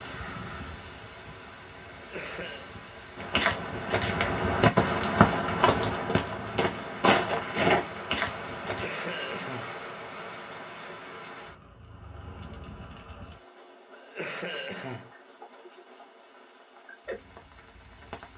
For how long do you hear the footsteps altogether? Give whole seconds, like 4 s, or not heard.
6 s.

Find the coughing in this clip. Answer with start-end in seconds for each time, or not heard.
1.9-2.7, 8.7-9.8, 13.9-15.1.